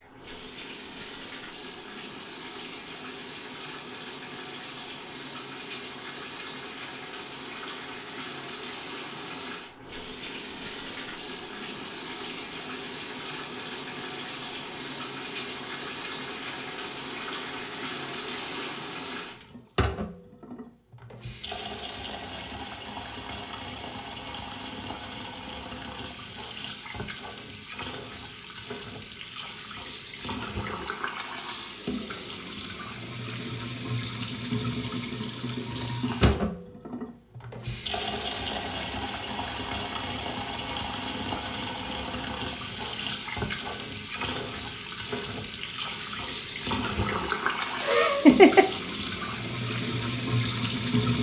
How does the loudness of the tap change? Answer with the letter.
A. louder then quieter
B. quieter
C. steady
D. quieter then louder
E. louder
E.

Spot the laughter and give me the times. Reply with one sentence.
You can hear the laughter from 47.8 to 48.6 s.